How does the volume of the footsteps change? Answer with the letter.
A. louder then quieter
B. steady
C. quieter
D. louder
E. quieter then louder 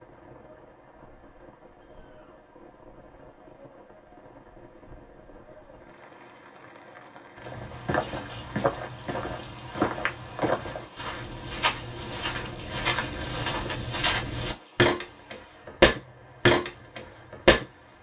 D.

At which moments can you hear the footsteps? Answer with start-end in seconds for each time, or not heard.
7.4-17.6.